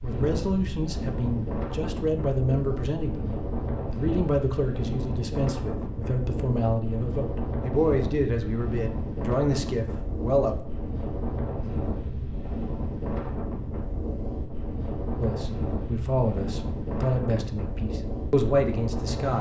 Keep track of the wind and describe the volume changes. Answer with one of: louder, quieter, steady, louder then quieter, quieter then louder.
steady.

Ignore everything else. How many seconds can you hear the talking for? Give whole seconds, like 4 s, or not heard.
15 s.